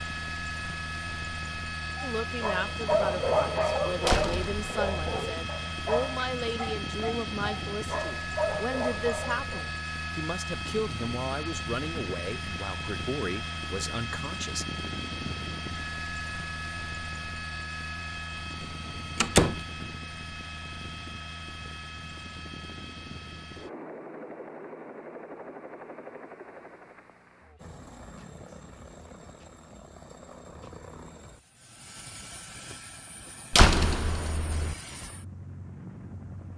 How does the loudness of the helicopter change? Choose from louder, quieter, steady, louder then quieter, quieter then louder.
quieter.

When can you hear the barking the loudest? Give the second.
3 s.